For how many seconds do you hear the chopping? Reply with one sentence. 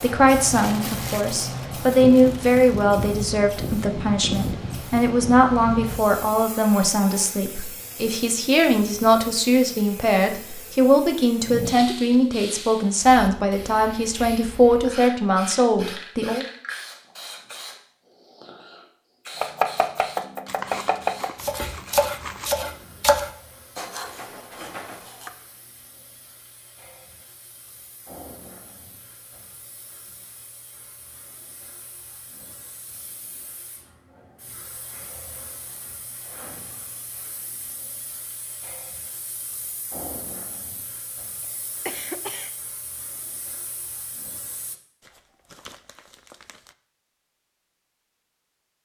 You can hear the chopping for 6 seconds altogether.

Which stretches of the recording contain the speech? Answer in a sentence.
The speech can be heard from 0.0 to 16.4 s.